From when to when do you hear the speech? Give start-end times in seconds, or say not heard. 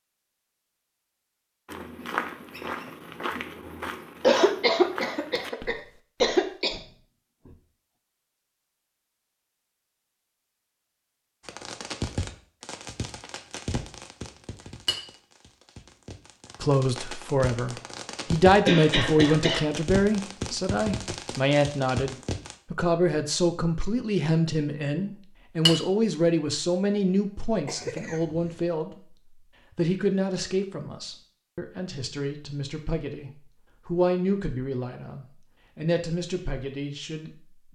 16.6-29.1, 29.8-37.7.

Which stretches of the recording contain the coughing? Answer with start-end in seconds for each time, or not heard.
4.2-6.8, 18.6-19.6, 27.6-28.6.